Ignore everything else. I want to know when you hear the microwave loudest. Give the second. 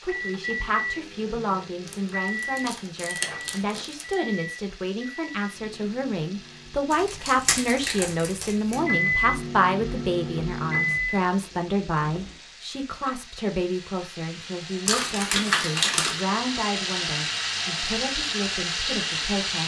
9 s.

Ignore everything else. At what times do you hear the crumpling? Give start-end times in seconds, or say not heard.
1.9-4.2, 6.9-8.8, 14.8-16.2.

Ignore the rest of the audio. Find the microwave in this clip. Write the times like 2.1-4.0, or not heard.
0.0-7.0, 8.7-12.3.